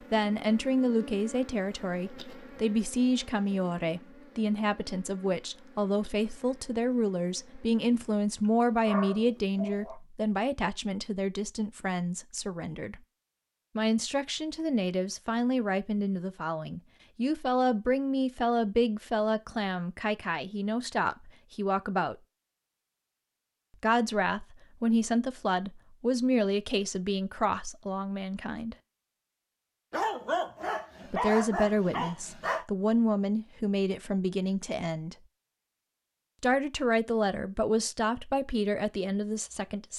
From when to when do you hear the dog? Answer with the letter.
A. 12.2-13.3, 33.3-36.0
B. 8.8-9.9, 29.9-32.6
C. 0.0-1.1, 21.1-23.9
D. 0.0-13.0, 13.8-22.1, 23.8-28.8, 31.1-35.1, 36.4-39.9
B.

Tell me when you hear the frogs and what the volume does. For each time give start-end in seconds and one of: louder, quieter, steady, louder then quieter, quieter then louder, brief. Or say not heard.
not heard.